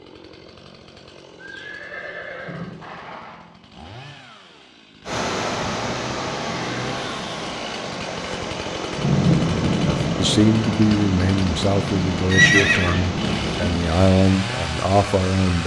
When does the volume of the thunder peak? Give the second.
9 s.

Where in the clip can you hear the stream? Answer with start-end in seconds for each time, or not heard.
5.0-15.6.